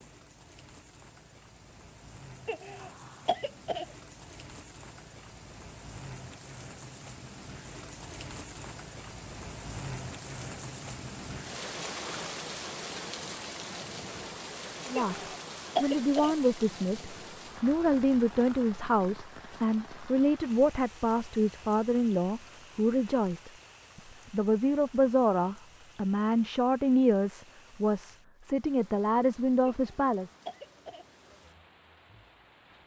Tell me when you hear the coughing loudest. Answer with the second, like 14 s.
16 s.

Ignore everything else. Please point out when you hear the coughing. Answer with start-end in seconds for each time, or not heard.
2.5-3.9, 14.9-16.4, 29.6-31.1.